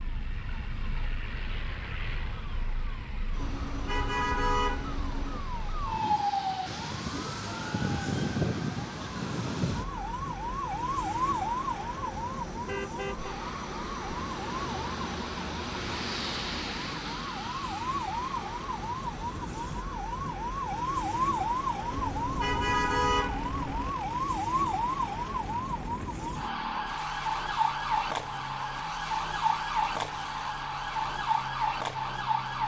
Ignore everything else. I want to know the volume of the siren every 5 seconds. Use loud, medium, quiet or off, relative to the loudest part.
quiet, loud, loud, medium, loud, loud, loud.